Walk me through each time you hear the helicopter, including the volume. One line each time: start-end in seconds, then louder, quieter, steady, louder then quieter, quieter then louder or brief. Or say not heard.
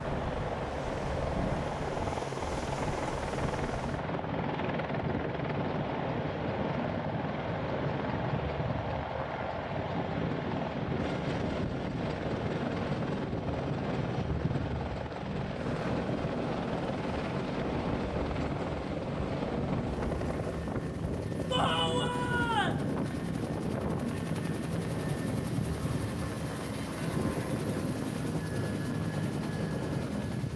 0.0-30.5 steady.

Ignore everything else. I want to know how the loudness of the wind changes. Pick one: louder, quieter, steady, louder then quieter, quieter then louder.
steady.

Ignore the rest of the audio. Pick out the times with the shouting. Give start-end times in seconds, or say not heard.
21.5-22.9.